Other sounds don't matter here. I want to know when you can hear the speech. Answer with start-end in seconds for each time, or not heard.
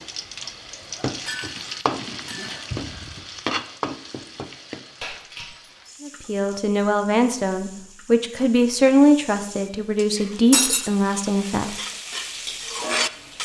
6.0-11.8.